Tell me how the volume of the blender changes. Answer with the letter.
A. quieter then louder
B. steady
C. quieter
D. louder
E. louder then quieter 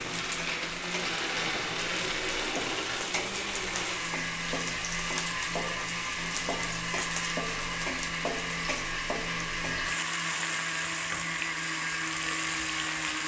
B.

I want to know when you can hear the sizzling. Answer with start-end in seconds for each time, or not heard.
0.0-13.2.